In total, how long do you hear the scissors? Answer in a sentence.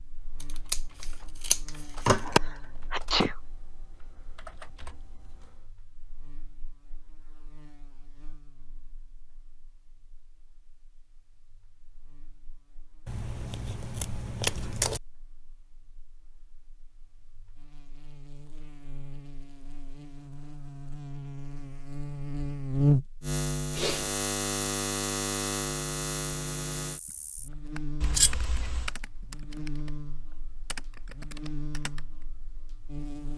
The scissors can be heard for 5 seconds in total.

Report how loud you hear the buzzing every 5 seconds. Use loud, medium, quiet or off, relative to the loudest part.
quiet, quiet, quiet, quiet, loud, medium, quiet.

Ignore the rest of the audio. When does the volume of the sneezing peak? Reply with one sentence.
The loudest moment of the sneezing is at 3 seconds.